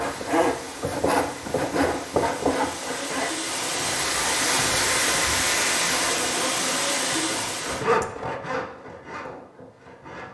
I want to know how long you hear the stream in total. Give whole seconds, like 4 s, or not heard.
8 s.